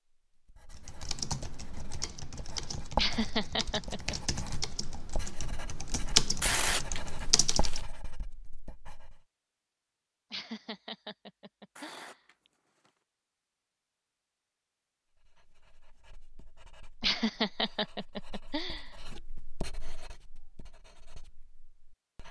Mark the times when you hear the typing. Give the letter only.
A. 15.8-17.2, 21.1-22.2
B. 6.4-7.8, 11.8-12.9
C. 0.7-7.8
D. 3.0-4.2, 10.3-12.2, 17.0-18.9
C.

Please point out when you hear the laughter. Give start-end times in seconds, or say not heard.
3.0-4.2, 10.3-12.2, 17.0-18.9.